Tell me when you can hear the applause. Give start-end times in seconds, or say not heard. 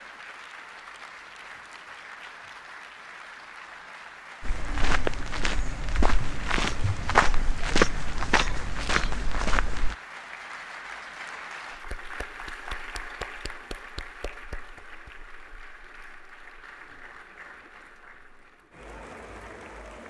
0.0-20.0.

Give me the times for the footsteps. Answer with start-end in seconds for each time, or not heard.
4.4-9.9.